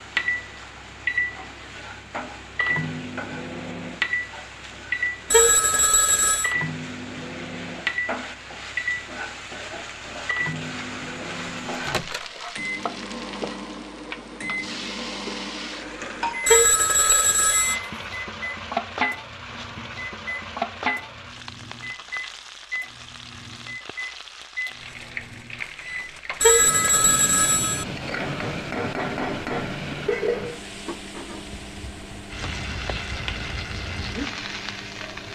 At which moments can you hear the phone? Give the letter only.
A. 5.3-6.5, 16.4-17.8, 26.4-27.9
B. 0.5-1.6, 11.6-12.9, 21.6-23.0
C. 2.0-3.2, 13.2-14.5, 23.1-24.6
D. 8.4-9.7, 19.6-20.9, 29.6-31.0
A.